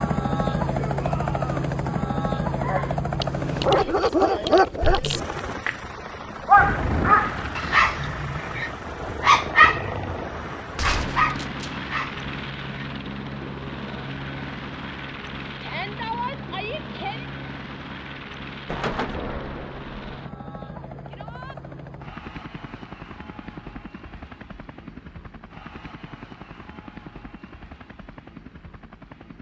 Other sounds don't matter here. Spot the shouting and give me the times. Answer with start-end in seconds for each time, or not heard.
0.8-1.6, 15.6-17.2, 21.1-21.6.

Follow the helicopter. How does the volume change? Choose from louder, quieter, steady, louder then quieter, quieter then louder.
quieter.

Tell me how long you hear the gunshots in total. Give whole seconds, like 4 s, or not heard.
2 s.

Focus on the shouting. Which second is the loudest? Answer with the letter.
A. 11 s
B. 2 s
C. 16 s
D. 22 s
C.